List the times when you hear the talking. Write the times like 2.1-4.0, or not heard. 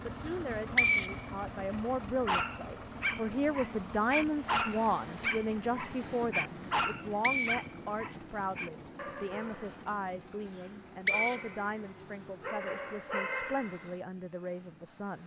0.0-15.2.